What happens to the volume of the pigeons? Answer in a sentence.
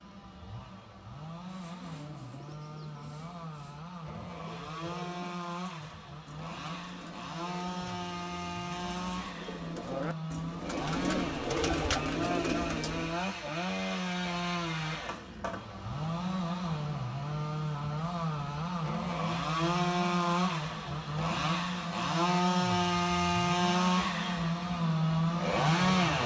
The volume of the pigeons goes up.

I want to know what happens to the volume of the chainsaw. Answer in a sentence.
The loudness of the chainsaw goes up.